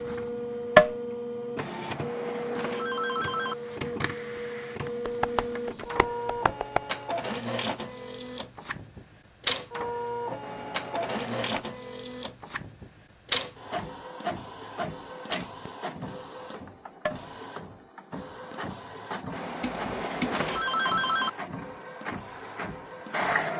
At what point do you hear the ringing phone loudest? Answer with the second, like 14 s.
21 s.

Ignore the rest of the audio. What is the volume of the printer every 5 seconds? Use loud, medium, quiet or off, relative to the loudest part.
loud, loud, loud, medium, loud.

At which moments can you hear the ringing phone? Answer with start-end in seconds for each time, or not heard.
1.6-3.5, 10.4-11.6, 19.3-21.3.